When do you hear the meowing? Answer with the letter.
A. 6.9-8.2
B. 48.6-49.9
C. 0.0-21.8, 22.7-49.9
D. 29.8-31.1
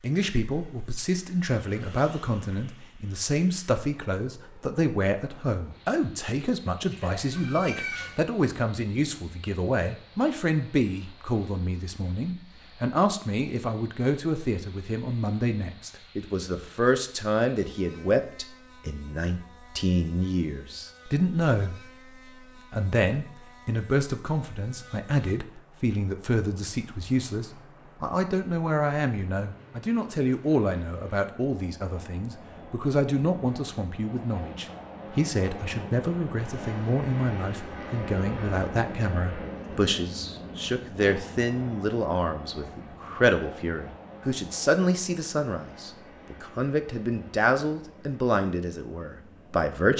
A.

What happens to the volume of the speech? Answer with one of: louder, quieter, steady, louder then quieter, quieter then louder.
steady.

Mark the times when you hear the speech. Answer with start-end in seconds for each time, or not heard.
0.0-21.8, 22.7-49.9.